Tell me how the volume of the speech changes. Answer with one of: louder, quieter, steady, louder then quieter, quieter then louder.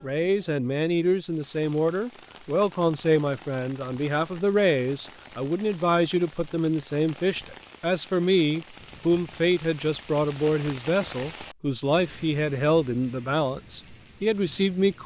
steady.